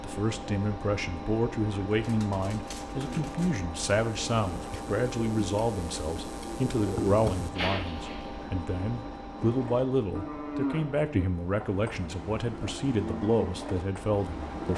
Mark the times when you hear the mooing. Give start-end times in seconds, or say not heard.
9.3-14.7.